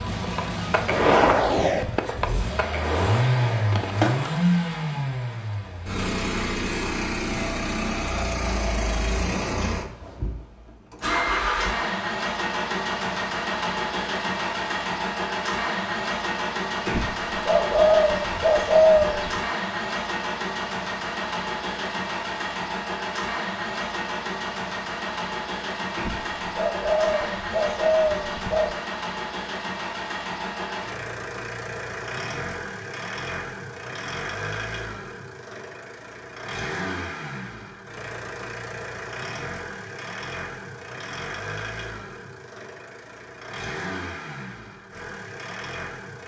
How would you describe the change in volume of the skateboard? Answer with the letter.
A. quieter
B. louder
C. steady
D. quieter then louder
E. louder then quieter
A.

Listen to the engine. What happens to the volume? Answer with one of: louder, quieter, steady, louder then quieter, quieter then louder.
quieter.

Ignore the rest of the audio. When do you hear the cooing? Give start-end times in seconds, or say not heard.
16.9-19.4, 25.9-28.8.